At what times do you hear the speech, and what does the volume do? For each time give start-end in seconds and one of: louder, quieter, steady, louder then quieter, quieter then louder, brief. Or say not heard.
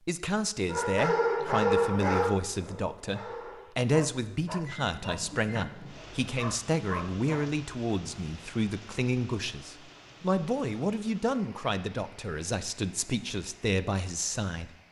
0.1-14.7 steady.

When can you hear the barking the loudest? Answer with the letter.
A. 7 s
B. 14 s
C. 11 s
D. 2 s
D.